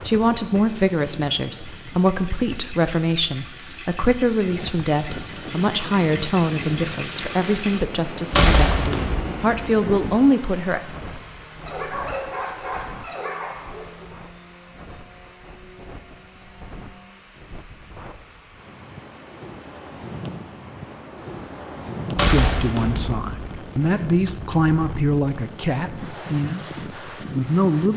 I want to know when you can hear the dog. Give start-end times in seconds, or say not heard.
11.7-14.1.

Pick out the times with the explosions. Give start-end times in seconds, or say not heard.
8.3-9.6, 22.1-23.2.